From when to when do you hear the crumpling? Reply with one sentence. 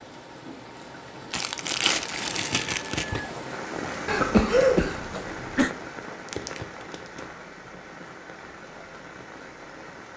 The crumpling can be heard from 1.3 to 3.2 s and from 6.2 to 7.2 s.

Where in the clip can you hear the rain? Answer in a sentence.
You can hear the rain from 0.0 to 10.1 s.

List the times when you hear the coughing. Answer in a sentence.
The coughing can be heard from 4.0 to 5.7 s.